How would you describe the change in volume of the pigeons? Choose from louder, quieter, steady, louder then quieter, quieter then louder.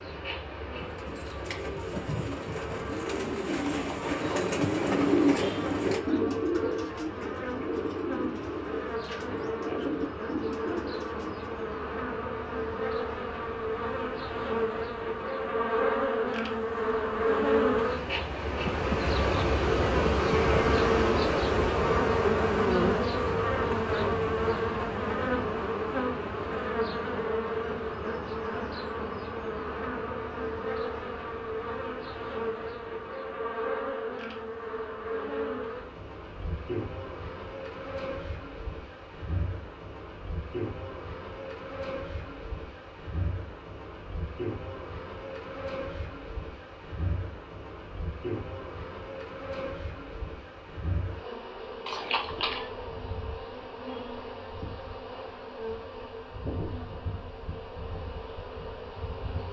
louder then quieter.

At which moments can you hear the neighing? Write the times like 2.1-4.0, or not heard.
51.9-52.7.